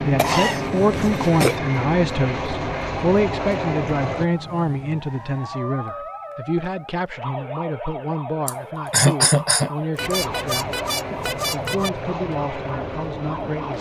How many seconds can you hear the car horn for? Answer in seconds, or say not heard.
2 s.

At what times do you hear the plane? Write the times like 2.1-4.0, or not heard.
0.0-4.3, 9.9-13.7.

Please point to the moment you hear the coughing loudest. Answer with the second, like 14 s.
9 s.